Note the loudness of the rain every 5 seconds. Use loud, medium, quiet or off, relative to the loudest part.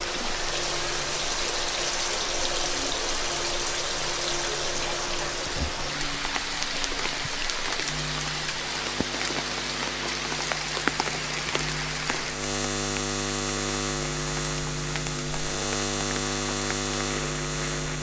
loud, loud, loud, medium.